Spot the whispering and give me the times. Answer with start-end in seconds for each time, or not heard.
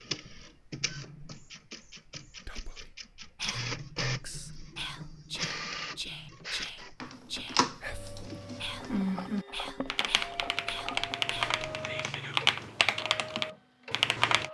2.5-12.5.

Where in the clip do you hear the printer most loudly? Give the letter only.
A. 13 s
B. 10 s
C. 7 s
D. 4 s
D.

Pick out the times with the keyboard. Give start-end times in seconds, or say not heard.
7.0-14.4.